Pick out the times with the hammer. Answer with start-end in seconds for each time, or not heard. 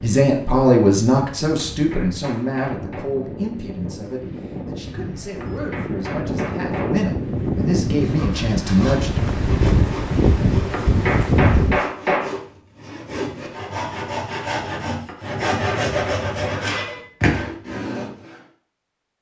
1.6-3.1, 5.4-7.0, 10.7-12.3, 15.1-16.7.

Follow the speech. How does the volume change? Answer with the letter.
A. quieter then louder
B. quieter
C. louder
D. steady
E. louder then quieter
A.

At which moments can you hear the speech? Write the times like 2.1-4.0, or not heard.
0.0-9.4.